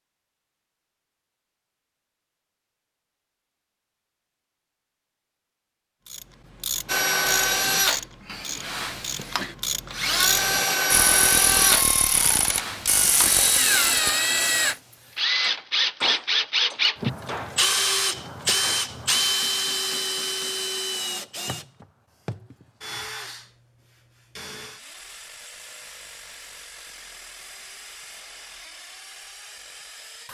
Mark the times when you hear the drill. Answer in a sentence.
The drill can be heard from 6.8 to 30.2 s.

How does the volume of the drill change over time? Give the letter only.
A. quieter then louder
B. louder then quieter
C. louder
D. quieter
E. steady
D.